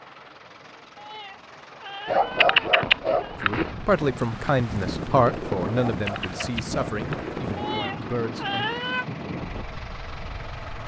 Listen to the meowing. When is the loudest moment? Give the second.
9 s.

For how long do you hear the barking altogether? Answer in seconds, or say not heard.
3 s.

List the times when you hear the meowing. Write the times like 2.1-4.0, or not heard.
0.9-3.4, 7.5-9.1.